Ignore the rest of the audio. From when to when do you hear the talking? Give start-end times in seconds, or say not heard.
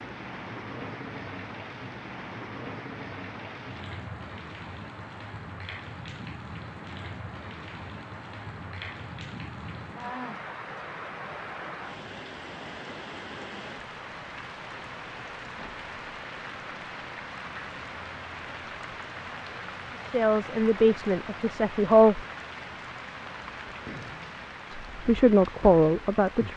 20.1-22.2, 24.7-26.5.